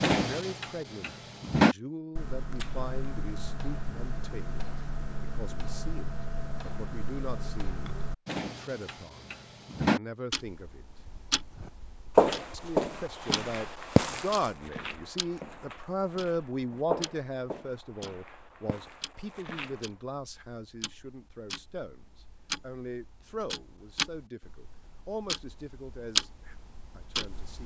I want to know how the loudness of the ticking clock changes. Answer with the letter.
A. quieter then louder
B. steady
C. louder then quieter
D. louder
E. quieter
A.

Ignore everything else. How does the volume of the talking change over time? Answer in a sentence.
The volume of the talking goes up, then down.